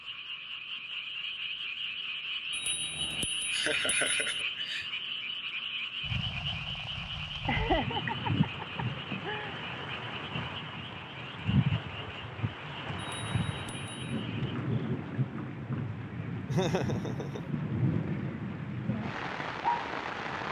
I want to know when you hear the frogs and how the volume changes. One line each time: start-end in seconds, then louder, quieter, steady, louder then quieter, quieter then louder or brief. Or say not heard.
0.0-14.6 quieter.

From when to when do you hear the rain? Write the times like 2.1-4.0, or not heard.
6.0-20.4.